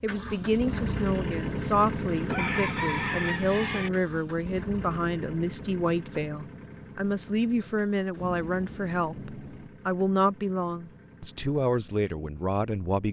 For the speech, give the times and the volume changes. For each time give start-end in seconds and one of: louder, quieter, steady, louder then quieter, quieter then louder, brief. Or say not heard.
0.0-13.0 steady.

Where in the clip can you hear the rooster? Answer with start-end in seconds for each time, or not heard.
2.3-3.9.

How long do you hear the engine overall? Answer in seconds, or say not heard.
13 s.